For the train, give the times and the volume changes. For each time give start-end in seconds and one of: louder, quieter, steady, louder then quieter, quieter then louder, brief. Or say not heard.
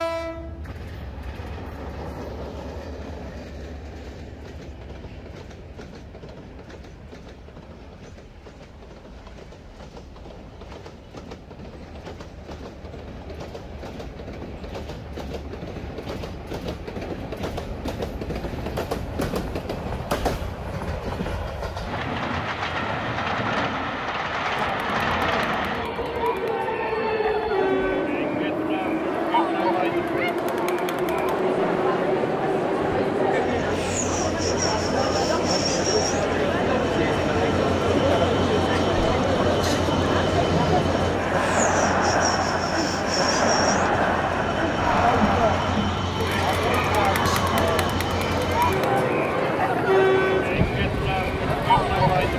0.0-52.3 louder.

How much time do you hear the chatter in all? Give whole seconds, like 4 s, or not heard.
28 s.